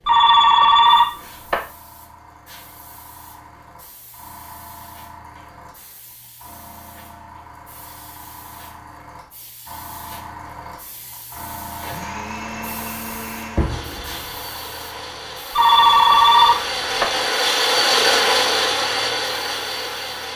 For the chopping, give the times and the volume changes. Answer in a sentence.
You can't hear the chopping here.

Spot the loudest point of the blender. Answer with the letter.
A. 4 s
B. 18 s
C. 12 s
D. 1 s
B.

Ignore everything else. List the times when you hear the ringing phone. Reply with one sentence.
You can hear the ringing phone from 0.1 to 1.6 s and from 15.6 to 17.1 s.